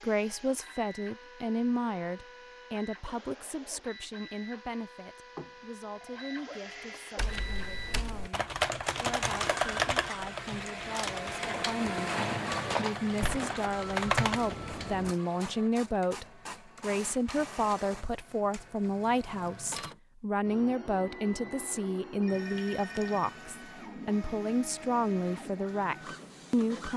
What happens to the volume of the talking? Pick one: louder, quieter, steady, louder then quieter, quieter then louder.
quieter then louder.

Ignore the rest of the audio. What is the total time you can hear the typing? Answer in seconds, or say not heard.
7 s.